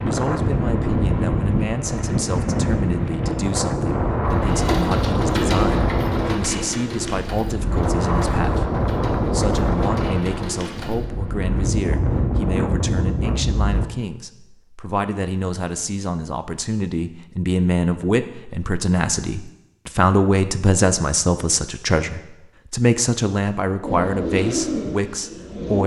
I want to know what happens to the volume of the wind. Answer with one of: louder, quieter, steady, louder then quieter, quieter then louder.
steady.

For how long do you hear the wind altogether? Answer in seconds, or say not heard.
14 s.